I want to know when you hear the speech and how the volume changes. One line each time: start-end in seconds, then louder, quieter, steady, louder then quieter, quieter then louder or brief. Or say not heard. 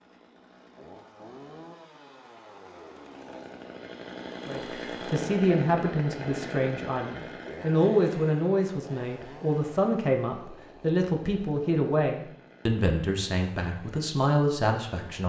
4.5-15.2 steady.